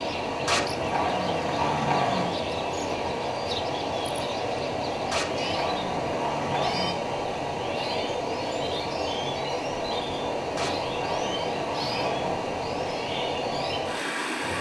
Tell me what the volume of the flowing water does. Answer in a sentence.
The loudness of the flowing water stays about the same.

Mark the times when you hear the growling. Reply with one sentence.
The growling can be heard from 0.5 to 2.4 s, from 5.1 to 7.0 s and from 10.6 to 12.5 s.